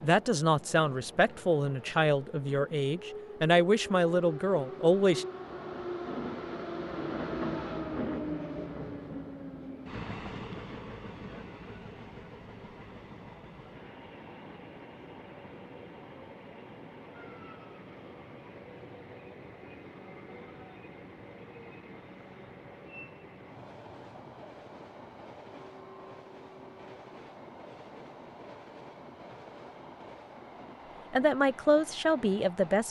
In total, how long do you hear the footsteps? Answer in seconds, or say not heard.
not heard.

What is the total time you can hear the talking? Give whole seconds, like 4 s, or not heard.
7 s.